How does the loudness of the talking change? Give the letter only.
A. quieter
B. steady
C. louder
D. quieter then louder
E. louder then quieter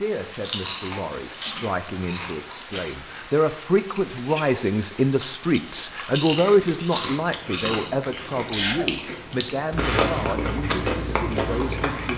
E.